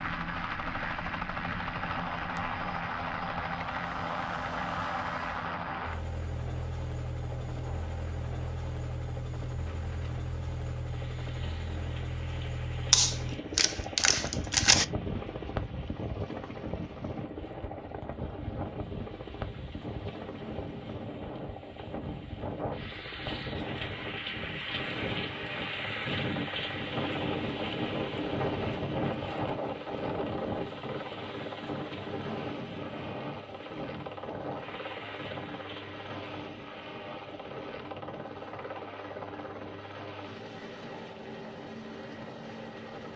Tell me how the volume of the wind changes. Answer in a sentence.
The loudness of the wind goes up, then down.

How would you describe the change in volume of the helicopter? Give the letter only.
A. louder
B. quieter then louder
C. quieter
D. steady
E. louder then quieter
C.